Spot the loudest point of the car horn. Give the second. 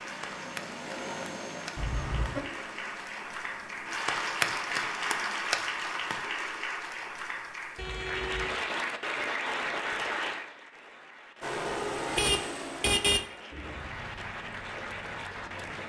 13 s.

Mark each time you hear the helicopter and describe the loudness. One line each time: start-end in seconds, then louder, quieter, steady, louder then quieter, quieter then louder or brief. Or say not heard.
0.0-5.5 quieter
11.4-15.8 quieter.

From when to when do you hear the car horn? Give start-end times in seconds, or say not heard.
1.8-2.5, 7.8-8.6, 12.1-13.2.